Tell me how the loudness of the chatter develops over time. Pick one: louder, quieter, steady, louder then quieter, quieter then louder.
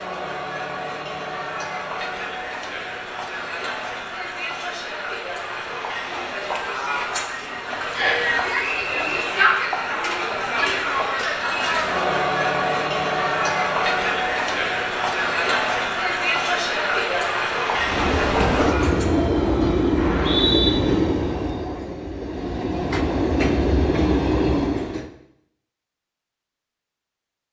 louder.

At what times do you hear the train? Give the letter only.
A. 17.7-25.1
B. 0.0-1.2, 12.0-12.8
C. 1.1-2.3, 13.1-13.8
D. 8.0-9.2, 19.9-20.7
A.